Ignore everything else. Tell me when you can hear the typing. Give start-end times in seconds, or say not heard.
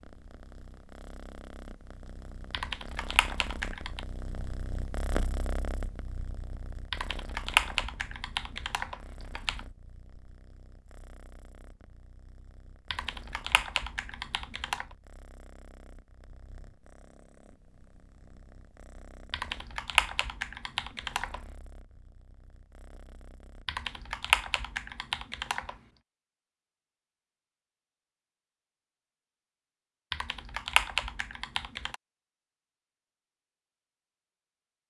2.5-4.0, 6.9-9.6, 12.9-14.8, 19.3-21.4, 23.6-25.8, 30.1-31.9.